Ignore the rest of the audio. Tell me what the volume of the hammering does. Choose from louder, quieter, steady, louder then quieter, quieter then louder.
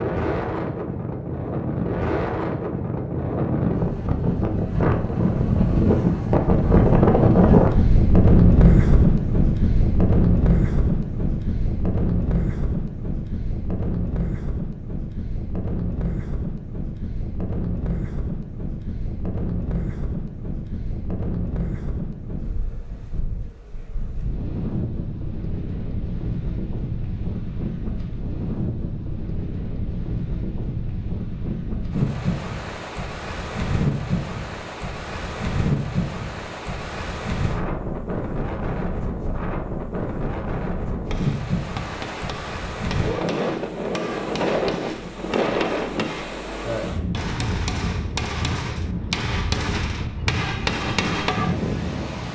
louder.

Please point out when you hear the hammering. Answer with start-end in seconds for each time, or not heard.
41.0-51.5.